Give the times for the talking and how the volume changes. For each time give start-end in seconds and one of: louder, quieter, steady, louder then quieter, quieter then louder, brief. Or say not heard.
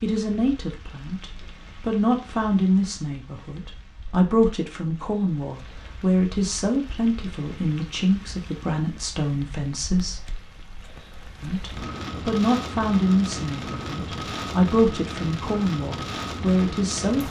0.0-10.2 steady
11.4-17.2 steady.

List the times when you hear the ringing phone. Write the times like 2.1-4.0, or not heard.
not heard.